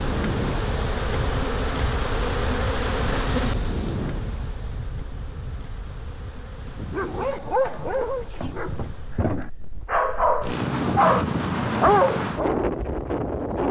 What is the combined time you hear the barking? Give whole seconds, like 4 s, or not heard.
6 s.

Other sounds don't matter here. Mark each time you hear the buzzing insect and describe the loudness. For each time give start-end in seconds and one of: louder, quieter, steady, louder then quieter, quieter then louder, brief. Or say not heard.
0.0-9.4 quieter.